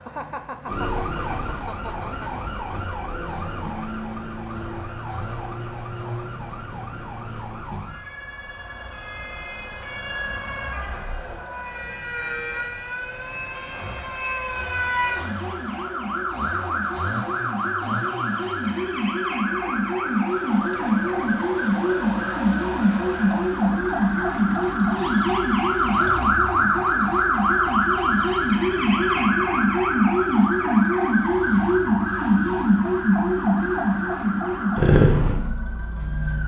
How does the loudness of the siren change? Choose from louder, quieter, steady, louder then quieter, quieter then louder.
louder.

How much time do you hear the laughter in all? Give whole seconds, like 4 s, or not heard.
2 s.